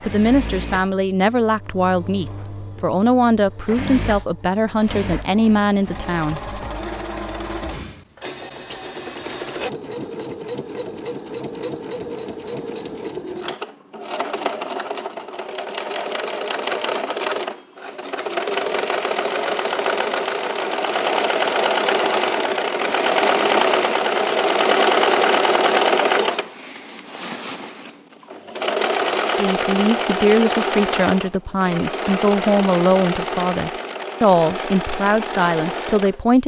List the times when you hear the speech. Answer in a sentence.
You can hear the speech from 0.0 to 6.4 s and from 29.4 to 36.4 s.